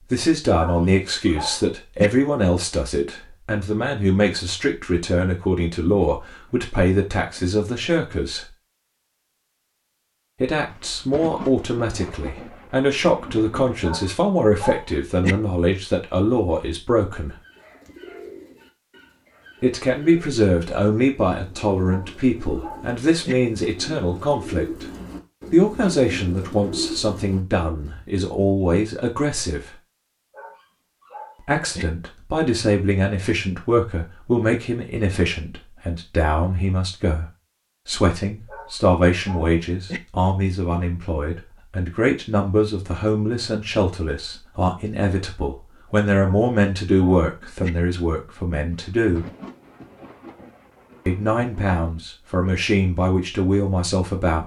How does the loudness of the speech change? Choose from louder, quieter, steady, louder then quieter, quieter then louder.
steady.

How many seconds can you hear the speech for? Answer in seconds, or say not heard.
46 s.